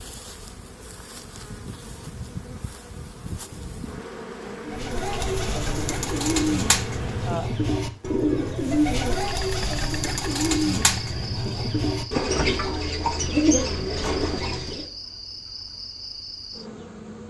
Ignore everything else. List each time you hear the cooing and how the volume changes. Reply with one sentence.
The cooing can be heard from 4.7 to 14.8 s, at a steady volume.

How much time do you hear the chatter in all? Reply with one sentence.
The chatter can't be heard in this clip.